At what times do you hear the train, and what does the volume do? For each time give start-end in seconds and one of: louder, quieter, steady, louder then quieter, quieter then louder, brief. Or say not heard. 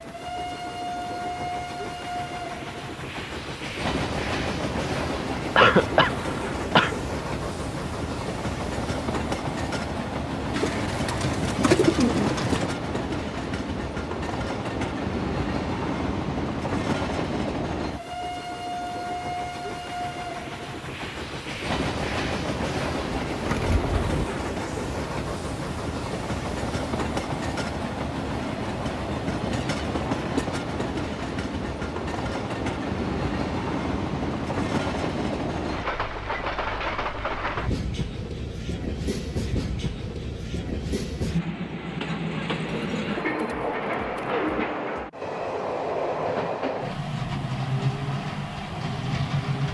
0.0-49.7 steady.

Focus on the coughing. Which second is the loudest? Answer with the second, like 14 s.
6 s.